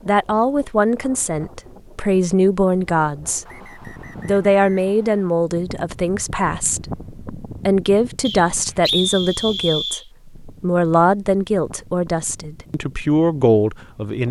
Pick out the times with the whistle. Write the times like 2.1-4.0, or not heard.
3.5-5.3, 8.2-10.1.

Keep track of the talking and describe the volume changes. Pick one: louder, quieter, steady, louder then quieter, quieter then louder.
steady.